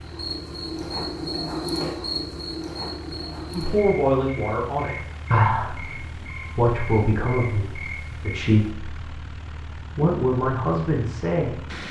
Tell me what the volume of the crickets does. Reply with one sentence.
The loudness of the crickets goes down.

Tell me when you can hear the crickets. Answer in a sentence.
You can hear the crickets from 0.0 to 8.5 s.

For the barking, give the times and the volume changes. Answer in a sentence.
The barking can't be heard in this clip.